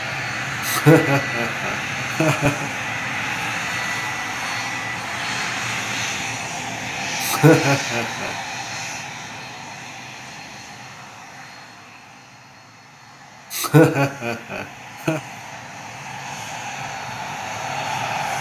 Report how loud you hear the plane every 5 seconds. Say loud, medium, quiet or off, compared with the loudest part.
loud, loud, quiet, loud.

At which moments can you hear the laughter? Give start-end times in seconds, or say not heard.
0.7-2.7, 7.2-8.3, 13.5-15.2.